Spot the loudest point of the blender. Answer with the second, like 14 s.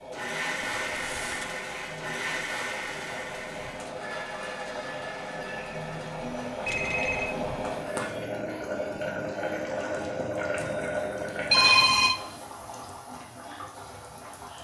1 s.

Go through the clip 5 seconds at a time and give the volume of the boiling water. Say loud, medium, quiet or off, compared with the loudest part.
medium, loud, loud.